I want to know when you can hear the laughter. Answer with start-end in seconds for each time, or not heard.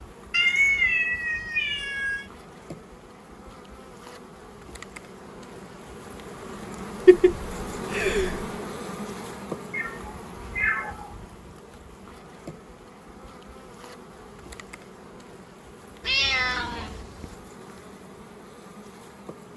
7.0-8.4.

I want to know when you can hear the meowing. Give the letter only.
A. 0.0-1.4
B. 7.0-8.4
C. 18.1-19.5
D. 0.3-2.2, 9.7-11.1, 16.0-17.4
D.